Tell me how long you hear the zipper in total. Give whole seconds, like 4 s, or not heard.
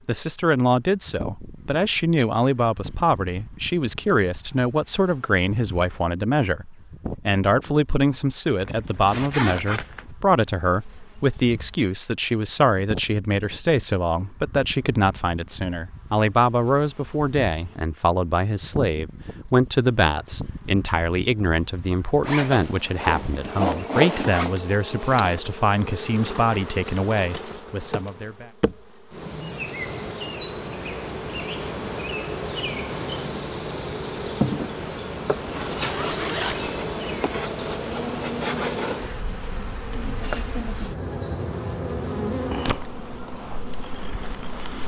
5 s.